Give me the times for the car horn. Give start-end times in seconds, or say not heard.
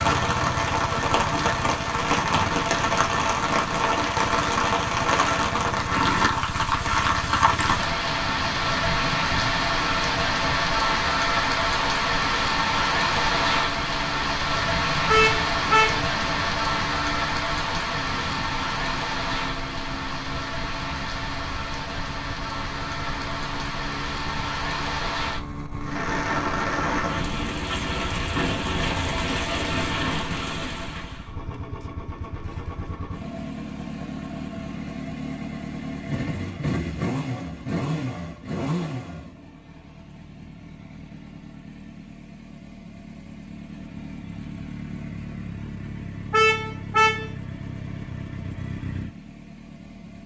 15.1-16.1, 46.3-47.3.